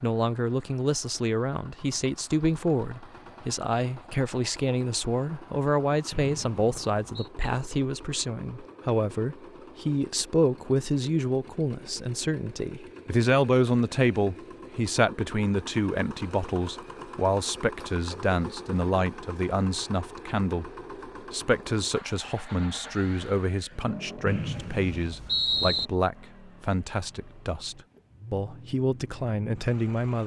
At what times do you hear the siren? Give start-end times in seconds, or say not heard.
not heard.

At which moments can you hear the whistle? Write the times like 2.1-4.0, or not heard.
6.1-7.3, 24.2-25.9.